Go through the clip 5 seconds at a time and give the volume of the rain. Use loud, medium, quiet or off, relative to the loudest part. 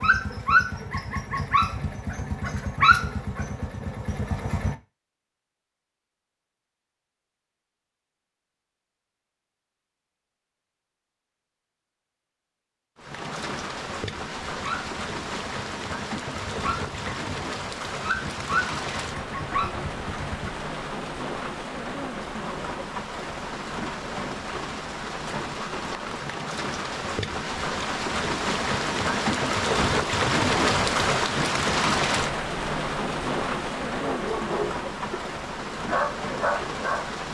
off, off, medium, medium, medium, loud, loud, medium.